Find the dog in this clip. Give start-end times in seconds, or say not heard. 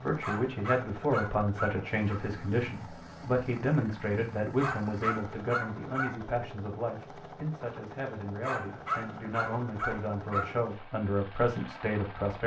0.2-2.2, 4.6-6.2, 8.4-10.5.